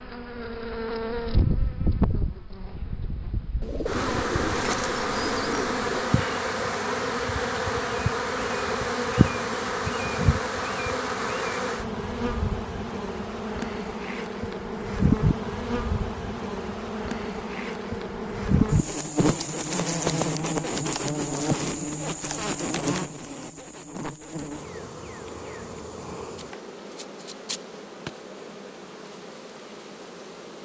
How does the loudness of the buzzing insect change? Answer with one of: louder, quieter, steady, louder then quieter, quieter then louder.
quieter.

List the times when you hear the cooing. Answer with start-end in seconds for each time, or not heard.
3.6-6.2.